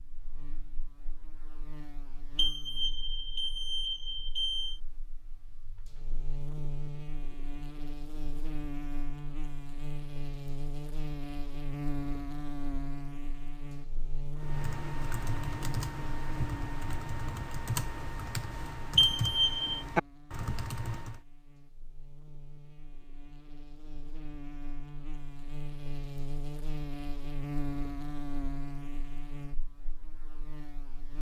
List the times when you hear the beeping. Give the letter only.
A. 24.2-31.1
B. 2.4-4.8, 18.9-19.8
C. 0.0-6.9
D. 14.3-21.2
B.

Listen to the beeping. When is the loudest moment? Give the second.
19 s.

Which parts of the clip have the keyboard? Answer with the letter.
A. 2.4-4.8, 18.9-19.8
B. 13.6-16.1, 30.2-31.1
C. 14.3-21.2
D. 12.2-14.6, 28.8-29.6
C.